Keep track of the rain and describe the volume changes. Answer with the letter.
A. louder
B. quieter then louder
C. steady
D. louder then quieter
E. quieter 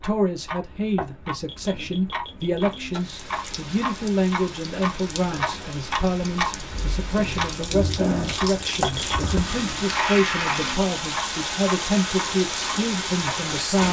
A.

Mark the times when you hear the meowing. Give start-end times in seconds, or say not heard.
not heard.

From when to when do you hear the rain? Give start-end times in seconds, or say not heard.
2.9-13.8.